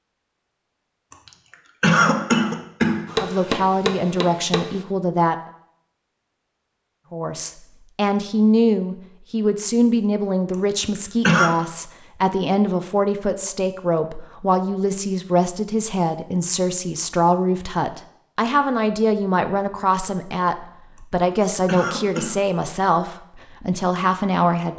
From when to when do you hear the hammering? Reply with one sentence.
The hammering can be heard from 3.0 to 4.8 s.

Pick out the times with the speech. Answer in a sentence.
You can hear the speech from 3.1 to 5.3 s and from 7.1 to 24.7 s.